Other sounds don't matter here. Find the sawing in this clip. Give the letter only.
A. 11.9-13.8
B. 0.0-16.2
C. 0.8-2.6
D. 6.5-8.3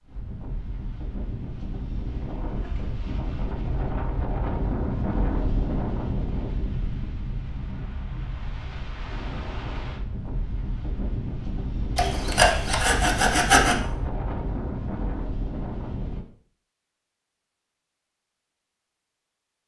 A.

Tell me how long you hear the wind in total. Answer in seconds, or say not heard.
16 s.